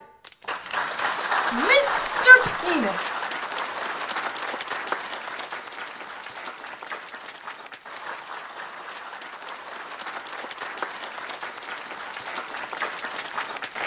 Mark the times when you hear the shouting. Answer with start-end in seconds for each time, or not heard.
1.5-3.0.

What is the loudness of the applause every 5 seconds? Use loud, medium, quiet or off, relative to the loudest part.
loud, medium, medium.